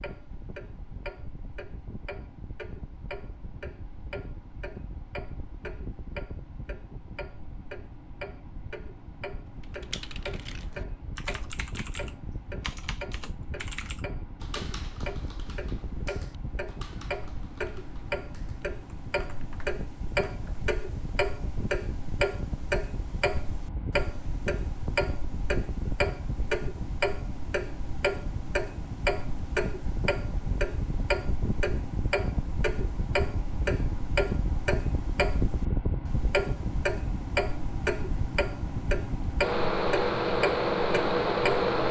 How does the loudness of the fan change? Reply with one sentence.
The loudness of the fan goes up.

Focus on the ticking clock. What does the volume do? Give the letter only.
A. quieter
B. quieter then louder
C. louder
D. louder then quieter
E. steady
C.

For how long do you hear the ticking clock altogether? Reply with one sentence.
You can hear the ticking clock for 42 seconds altogether.